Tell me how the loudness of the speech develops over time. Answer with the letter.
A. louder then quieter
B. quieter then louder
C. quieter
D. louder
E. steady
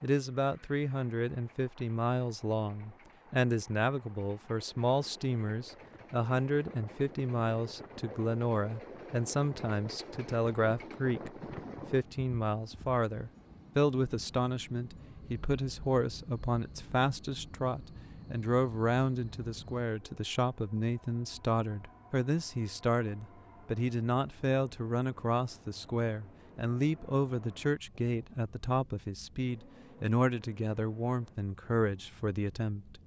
E.